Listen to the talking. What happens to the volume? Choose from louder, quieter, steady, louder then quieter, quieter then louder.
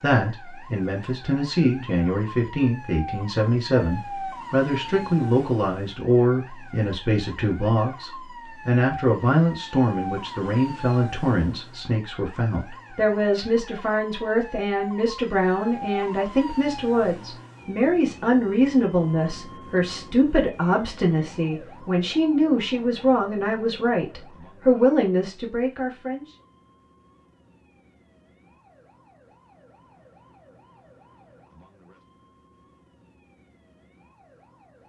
steady.